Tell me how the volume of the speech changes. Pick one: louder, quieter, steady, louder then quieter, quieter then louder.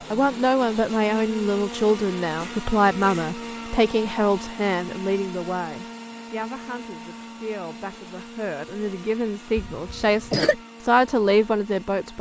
quieter then louder.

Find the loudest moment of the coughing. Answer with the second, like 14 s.
10 s.